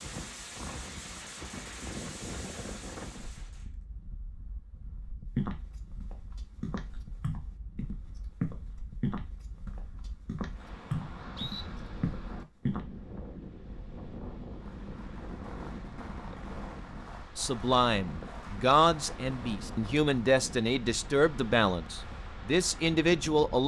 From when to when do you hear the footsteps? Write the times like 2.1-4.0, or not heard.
5.3-12.8.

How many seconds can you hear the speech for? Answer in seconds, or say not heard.
6 s.